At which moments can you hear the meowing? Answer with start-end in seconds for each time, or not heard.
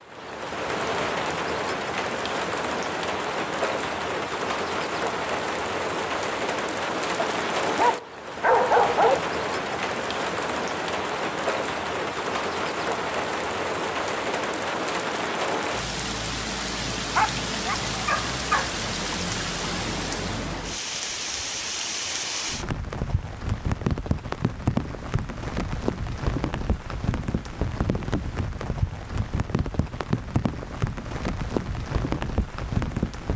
not heard.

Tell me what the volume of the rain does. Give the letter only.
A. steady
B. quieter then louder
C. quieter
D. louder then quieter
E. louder
A.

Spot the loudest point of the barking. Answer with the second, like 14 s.
9 s.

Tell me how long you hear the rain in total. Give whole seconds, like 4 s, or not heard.
33 s.